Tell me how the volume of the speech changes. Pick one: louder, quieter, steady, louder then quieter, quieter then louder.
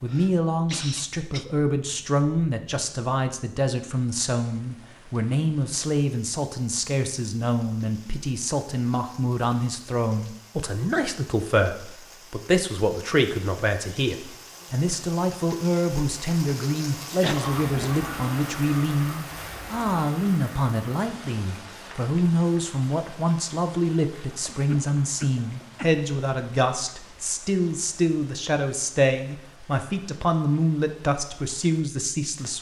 steady.